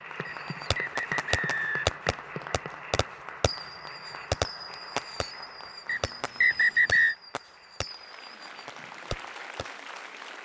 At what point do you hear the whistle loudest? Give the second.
7 s.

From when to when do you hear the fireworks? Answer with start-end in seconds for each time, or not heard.
0.2-9.7.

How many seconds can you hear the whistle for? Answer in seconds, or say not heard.
3 s.